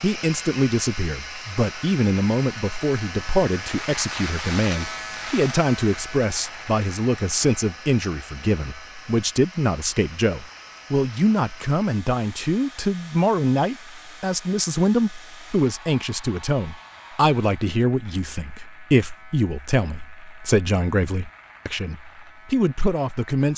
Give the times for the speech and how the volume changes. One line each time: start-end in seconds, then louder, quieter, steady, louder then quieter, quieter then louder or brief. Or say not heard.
0.0-23.5 steady.